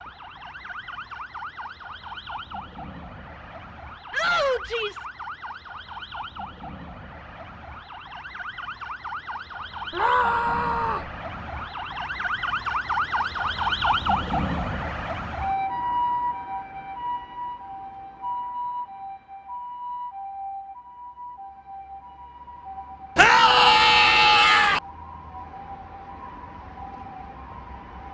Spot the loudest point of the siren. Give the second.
14 s.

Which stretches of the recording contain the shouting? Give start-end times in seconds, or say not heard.
4.1-5.0, 9.9-11.1, 23.1-24.8.